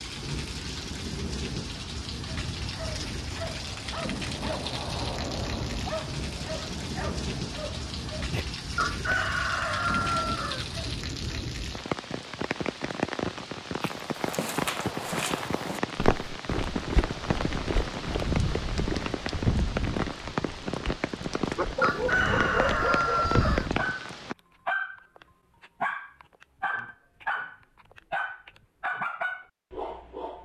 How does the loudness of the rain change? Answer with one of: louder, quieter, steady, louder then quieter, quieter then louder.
steady.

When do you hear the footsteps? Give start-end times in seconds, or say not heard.
13.8-23.9.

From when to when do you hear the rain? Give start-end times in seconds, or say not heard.
0.0-24.4.